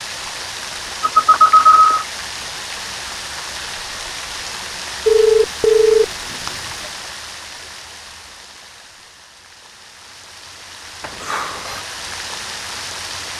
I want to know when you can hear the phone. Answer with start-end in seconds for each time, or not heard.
1.0-2.0, 5.0-6.9, 11.0-11.8.